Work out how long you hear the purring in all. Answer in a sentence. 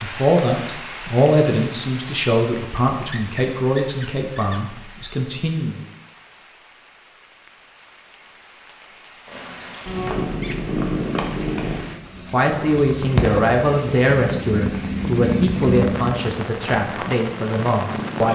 The purring can be heard for 9 seconds in total.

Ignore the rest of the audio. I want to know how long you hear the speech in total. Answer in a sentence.
You can hear the speech for 12 seconds altogether.